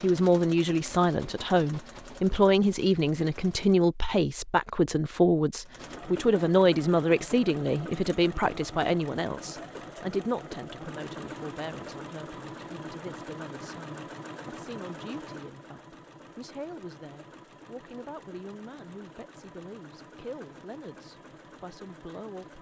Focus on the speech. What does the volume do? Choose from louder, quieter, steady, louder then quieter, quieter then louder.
quieter.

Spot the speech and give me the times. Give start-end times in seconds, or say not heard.
0.0-22.5.